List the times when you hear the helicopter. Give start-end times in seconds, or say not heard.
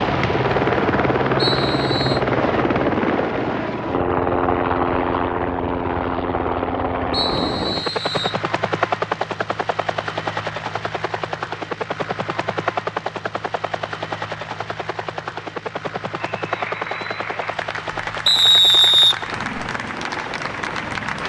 0.0-21.2.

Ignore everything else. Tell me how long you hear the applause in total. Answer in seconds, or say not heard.
5 s.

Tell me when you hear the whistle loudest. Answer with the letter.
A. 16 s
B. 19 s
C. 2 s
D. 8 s
B.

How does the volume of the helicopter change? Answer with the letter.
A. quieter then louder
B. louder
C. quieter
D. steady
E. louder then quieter
C.